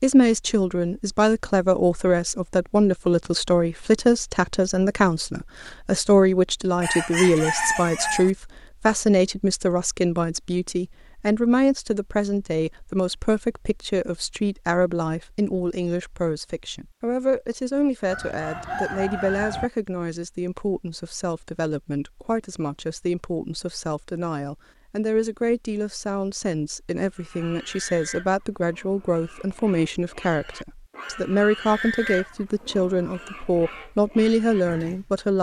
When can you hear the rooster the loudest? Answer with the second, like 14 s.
8 s.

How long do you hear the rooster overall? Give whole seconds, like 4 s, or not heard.
3 s.